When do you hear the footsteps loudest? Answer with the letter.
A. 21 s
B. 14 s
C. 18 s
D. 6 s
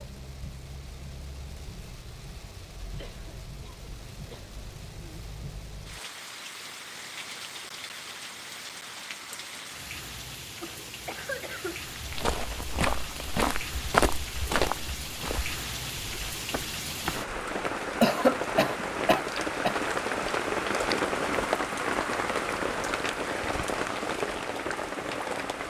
B.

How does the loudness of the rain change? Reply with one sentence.
The volume of the rain goes up.